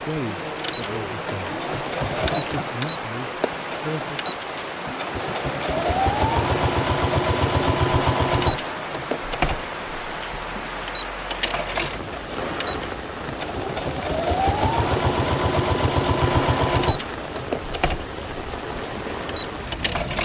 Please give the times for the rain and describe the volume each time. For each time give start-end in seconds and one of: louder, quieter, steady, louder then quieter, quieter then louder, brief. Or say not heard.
0.0-20.2 steady.